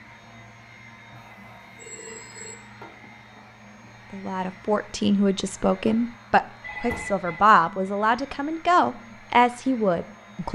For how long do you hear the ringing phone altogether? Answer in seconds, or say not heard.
2 s.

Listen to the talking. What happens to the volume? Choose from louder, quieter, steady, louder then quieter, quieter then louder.
steady.